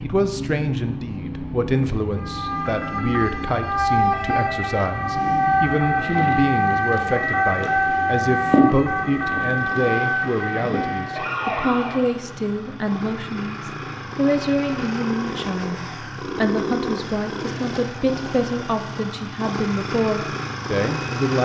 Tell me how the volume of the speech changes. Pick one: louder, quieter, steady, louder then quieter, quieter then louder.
steady.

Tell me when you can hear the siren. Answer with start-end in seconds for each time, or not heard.
2.1-12.2.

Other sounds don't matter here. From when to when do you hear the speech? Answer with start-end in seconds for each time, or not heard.
0.0-21.3.